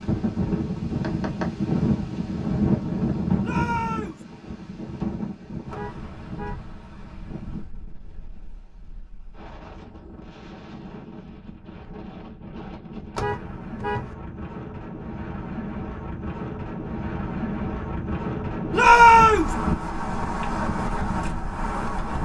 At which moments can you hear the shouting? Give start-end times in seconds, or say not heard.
3.4-4.2, 18.7-19.6.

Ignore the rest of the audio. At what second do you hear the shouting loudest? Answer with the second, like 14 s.
19 s.